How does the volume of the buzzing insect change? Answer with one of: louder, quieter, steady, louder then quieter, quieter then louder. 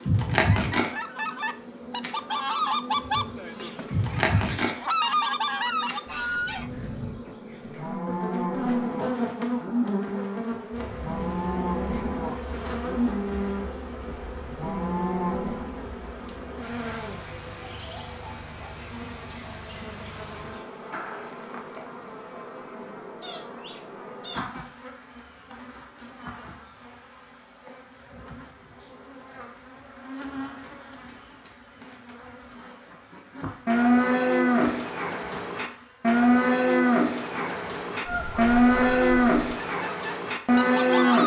quieter.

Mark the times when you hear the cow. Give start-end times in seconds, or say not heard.
6.2-15.9, 33.6-41.2.